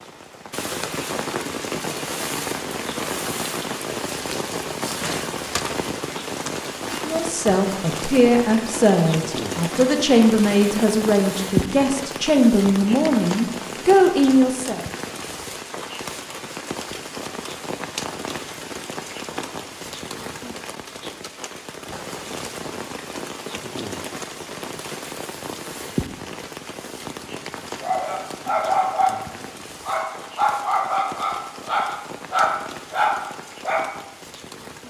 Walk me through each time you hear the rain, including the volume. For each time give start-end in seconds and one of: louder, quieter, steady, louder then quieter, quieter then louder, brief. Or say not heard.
0.0-34.8 quieter.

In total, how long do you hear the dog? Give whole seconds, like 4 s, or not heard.
6 s.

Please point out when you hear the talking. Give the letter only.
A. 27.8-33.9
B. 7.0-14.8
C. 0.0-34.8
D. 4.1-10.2
B.